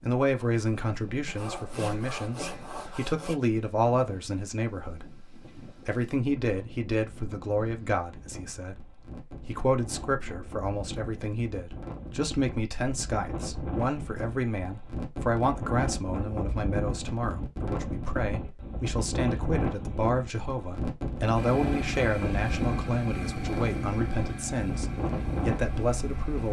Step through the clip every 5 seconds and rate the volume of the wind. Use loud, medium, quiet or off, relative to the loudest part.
quiet, quiet, medium, loud, loud, loud.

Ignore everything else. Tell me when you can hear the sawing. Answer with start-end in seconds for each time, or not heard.
1.2-3.4.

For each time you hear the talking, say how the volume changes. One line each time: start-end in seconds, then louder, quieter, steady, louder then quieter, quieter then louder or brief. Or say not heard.
0.0-26.4 steady.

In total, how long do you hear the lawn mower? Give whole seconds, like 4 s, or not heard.
5 s.